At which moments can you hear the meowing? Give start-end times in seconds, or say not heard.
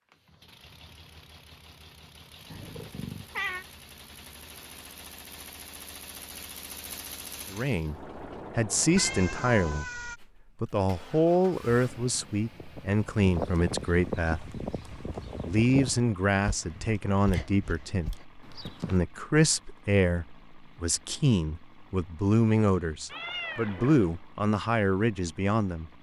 2.5-3.6, 8.9-10.2, 23.1-24.2.